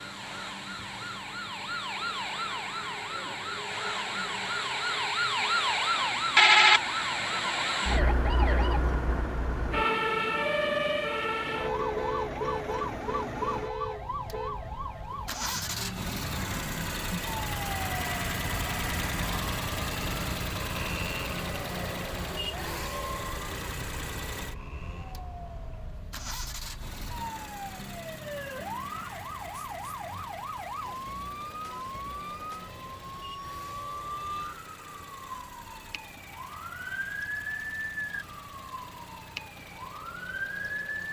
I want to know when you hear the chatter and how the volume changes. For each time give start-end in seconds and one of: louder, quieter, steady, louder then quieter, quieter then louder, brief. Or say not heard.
not heard.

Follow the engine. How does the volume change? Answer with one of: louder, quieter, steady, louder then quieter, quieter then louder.
louder then quieter.